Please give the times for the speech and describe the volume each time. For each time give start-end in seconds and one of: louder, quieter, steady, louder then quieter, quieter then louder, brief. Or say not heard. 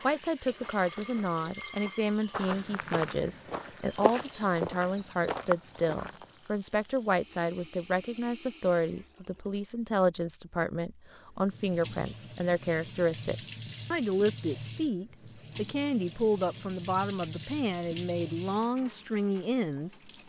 0.0-20.1 steady.